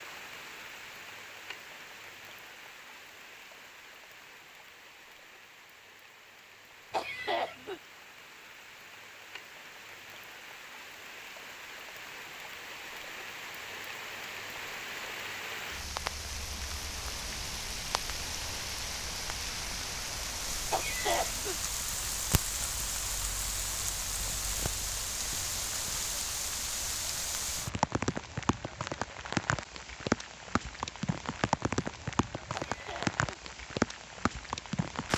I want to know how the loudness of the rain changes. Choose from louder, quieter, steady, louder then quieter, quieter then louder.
louder.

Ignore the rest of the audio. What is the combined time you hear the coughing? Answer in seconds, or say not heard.
2 s.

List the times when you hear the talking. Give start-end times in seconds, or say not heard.
not heard.